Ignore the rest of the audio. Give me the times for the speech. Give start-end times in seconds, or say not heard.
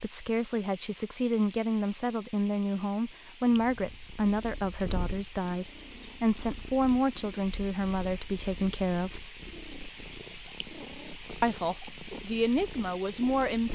0.0-9.2, 11.4-13.7.